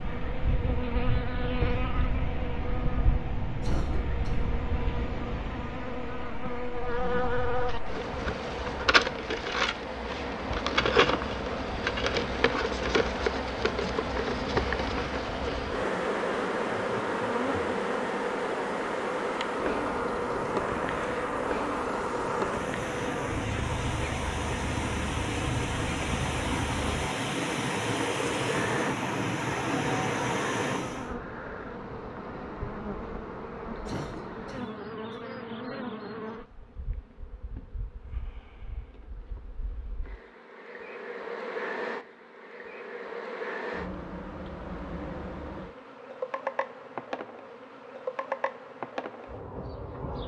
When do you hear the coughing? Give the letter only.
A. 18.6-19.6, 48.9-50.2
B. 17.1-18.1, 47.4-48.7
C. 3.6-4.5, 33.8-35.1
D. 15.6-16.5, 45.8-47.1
C.